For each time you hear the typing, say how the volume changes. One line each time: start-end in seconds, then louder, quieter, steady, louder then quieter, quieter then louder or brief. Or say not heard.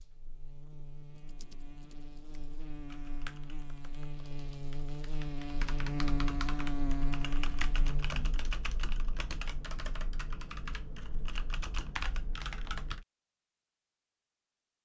1.1-13.1 louder.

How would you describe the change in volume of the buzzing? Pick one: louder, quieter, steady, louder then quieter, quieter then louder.
louder.